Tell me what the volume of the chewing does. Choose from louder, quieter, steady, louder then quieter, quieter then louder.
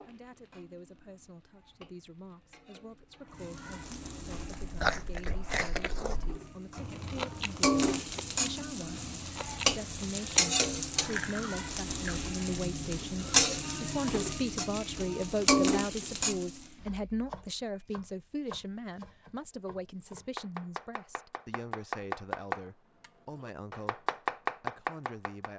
quieter then louder.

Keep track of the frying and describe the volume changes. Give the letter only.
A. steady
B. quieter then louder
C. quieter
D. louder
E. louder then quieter
D.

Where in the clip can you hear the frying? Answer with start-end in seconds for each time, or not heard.
0.0-16.6.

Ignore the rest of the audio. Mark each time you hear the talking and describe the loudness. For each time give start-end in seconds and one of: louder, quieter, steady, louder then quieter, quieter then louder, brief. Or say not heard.
0.1-25.5 louder then quieter.